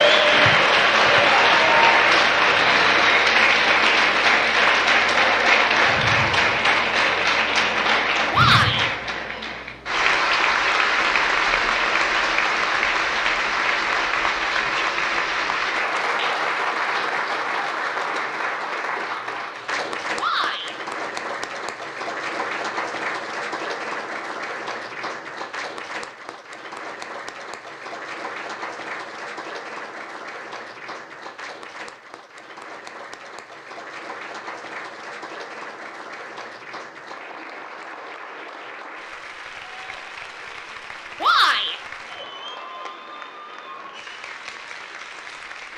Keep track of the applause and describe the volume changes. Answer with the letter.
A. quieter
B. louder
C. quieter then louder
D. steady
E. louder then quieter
A.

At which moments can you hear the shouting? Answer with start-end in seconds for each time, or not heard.
8.3-8.9, 20.1-20.8, 41.2-41.8.